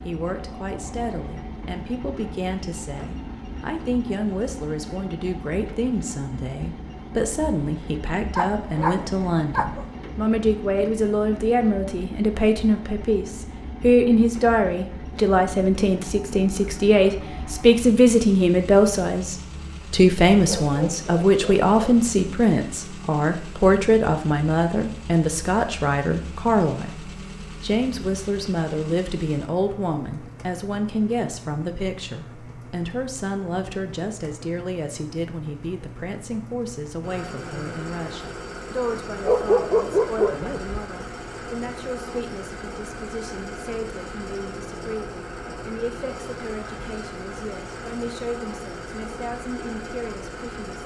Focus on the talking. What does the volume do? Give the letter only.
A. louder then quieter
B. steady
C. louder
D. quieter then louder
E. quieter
A.